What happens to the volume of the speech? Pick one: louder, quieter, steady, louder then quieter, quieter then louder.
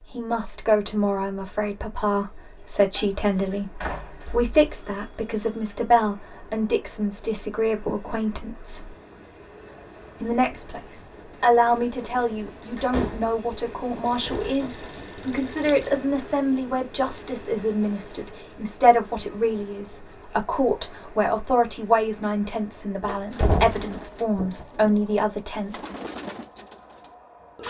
steady.